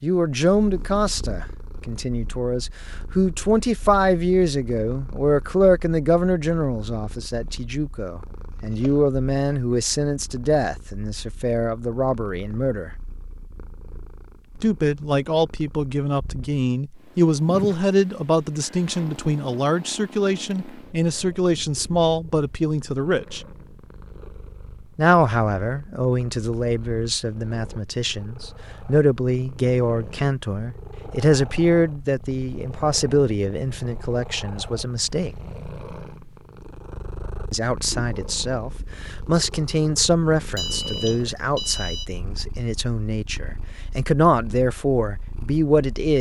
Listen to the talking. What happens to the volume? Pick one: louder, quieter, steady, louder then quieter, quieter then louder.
steady.